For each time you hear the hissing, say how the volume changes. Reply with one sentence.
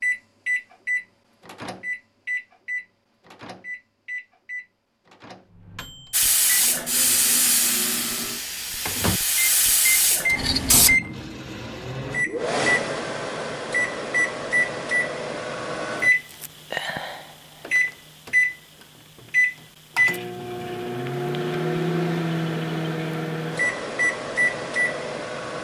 You can hear the hissing from 6.1 to 10.9 s, getting quieter then louder.